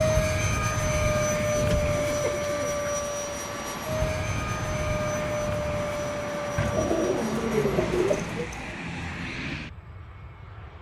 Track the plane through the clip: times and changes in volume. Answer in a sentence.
The plane can be heard from 0.0 to 10.7 s, getting quieter.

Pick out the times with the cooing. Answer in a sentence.
The cooing can be heard from 1.6 to 2.9 s and from 6.5 to 8.8 s.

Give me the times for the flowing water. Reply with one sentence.
You can hear the flowing water from 0.0 to 8.3 s.